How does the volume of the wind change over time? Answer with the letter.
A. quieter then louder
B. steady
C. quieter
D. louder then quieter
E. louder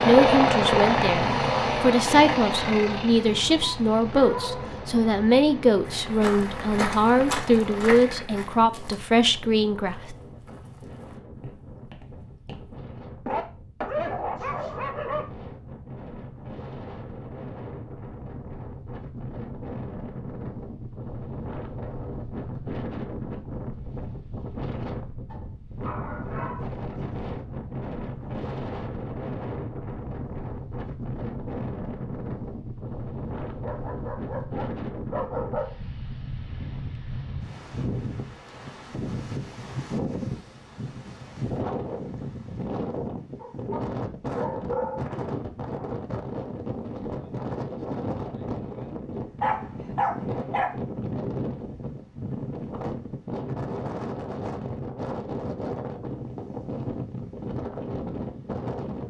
E.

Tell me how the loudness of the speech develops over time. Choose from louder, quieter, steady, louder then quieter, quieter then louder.
steady.